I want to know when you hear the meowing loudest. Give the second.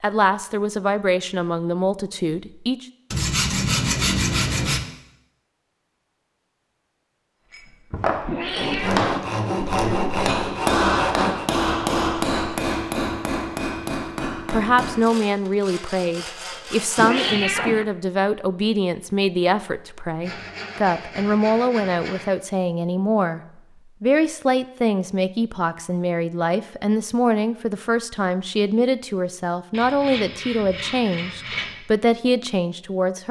17 s.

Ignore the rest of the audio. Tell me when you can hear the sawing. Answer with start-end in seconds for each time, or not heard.
3.1-4.8, 8.6-11.5, 14.8-17.4, 20.2-22.2, 29.7-31.8.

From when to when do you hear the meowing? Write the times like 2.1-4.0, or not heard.
8.2-9.2, 16.9-17.9.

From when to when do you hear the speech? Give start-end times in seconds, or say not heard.
0.0-2.9, 14.5-23.4, 24.0-33.2.